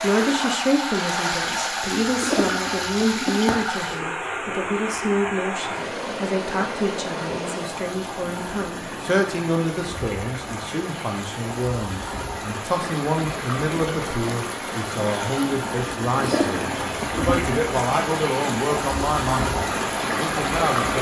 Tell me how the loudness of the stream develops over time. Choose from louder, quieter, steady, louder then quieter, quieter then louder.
quieter then louder.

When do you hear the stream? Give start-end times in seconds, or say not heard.
0.0-20.9.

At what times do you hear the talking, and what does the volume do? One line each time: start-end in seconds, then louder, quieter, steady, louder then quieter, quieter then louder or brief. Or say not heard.
0.0-20.9 steady.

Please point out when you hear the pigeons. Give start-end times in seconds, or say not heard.
2.0-3.5, 16.1-17.6.